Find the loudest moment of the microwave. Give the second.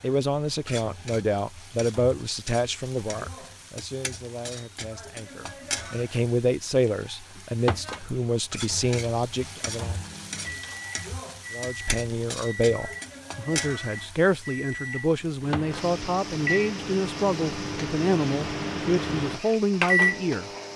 20 s.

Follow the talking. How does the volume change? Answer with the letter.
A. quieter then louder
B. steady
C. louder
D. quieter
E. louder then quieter
B.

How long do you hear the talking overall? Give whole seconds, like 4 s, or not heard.
19 s.